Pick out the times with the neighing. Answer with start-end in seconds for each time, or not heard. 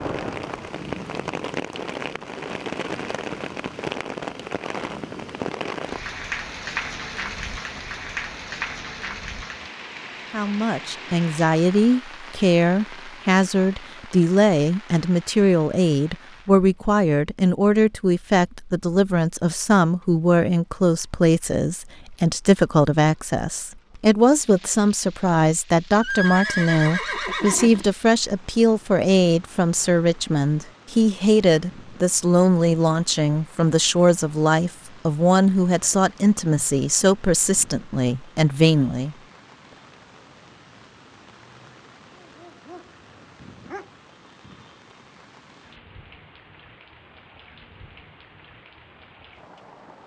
26.0-27.9.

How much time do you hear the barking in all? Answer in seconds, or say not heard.
2 s.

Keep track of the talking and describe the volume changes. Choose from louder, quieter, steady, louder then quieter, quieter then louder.
steady.